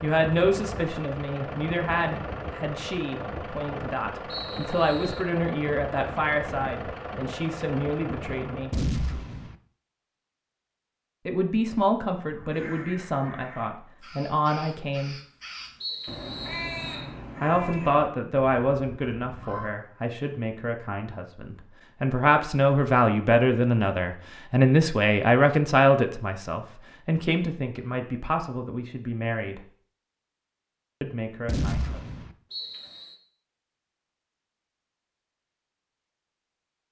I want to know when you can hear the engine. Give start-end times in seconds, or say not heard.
0.0-8.9.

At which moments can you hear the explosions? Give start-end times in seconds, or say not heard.
8.7-9.6, 31.4-32.4.